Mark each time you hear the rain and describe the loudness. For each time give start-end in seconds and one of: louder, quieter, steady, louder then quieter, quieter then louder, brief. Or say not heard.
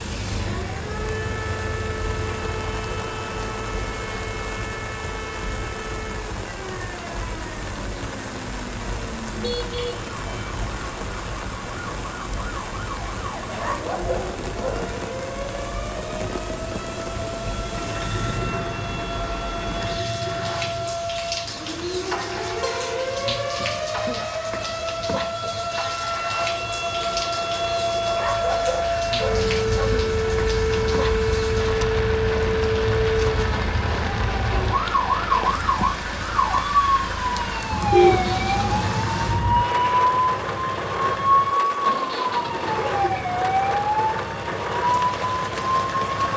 0.0-46.3 steady.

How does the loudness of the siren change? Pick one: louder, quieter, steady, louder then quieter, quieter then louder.
louder.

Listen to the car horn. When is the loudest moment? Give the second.
38 s.